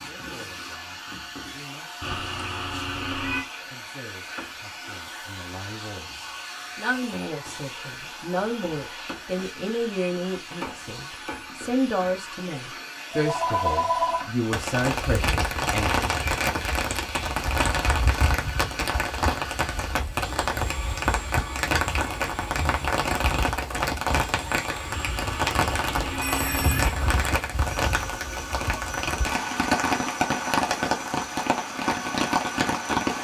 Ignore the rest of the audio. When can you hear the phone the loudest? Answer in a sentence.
The volume of the phone peaks at 14 seconds.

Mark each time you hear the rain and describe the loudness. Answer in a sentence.
You can hear the rain from 14.5 to 33.1 s, at a steady volume.